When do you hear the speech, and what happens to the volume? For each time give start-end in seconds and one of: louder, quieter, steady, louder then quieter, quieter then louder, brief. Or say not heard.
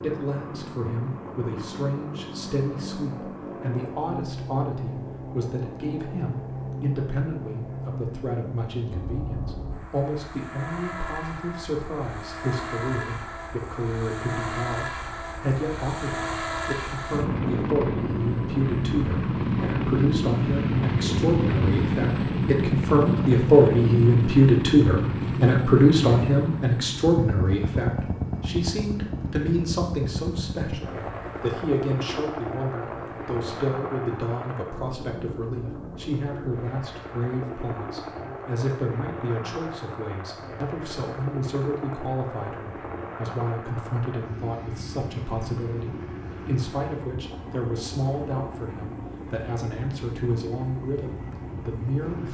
0.0-52.2 louder then quieter.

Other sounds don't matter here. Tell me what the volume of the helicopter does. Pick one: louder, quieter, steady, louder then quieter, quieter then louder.
louder then quieter.